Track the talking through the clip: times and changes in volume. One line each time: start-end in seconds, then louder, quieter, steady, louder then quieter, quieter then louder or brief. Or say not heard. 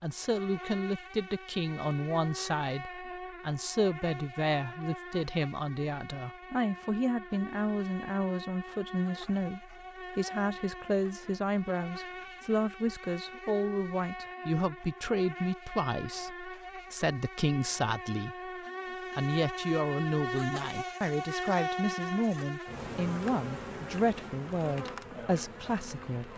0.0-18.5 steady
19.1-26.3 steady.